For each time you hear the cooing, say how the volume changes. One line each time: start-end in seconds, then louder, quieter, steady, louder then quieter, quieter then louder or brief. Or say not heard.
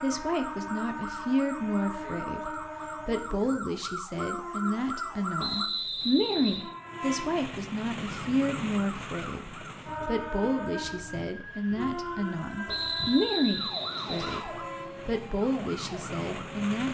not heard.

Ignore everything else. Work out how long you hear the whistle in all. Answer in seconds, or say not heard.
3 s.